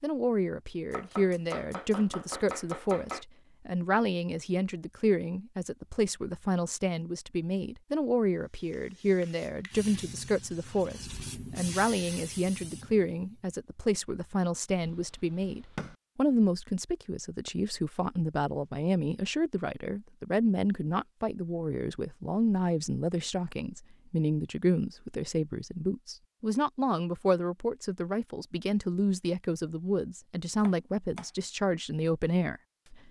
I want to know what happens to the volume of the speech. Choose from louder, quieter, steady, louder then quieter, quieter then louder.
steady.